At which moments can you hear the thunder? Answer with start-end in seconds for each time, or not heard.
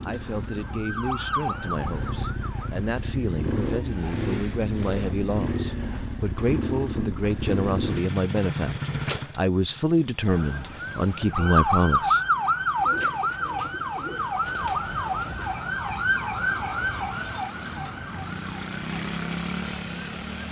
not heard.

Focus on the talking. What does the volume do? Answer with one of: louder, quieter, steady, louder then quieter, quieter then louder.
louder.